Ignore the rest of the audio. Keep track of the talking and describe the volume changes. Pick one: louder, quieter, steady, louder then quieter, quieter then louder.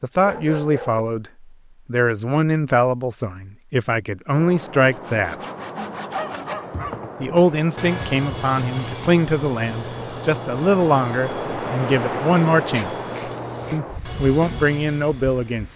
steady.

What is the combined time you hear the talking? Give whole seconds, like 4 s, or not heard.
14 s.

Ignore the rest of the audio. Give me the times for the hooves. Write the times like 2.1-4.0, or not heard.
not heard.